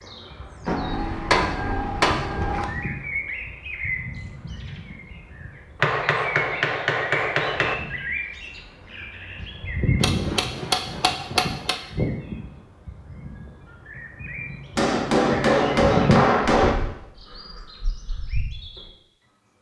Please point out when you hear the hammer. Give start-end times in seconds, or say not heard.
0.7-2.6, 5.8-7.8, 10.0-11.8, 14.8-16.8.